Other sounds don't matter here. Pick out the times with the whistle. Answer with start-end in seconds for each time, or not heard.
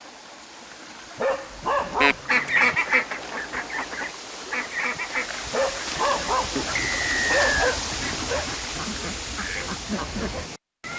6.8-7.8.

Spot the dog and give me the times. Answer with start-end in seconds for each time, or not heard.
1.1-2.8, 5.5-8.4.